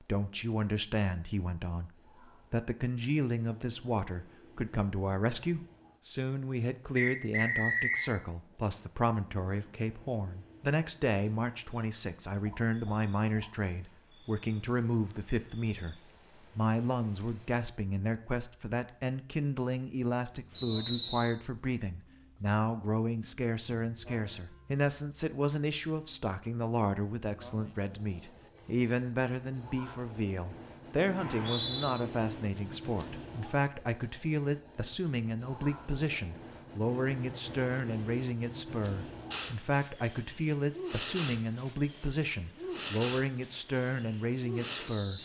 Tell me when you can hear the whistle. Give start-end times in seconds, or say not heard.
7.0-8.1, 20.6-21.3, 31.1-31.9.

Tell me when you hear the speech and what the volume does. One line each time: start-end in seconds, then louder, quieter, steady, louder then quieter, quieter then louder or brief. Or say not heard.
0.0-15.9 steady
16.6-45.2 steady.